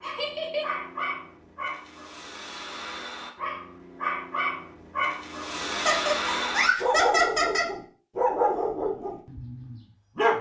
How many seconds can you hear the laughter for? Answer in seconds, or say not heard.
3 s.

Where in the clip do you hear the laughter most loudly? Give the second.
7 s.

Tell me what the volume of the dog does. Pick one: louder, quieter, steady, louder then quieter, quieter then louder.
louder.